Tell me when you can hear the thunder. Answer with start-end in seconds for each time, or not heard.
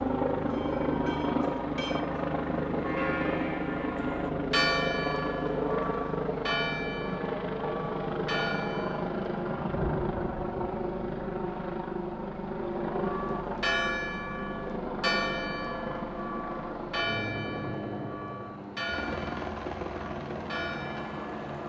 9.6-10.8.